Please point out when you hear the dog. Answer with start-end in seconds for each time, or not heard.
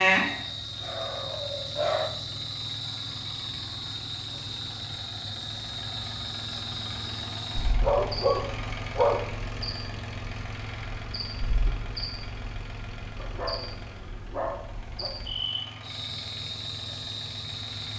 0.3-2.1, 7.8-9.3, 13.2-15.1.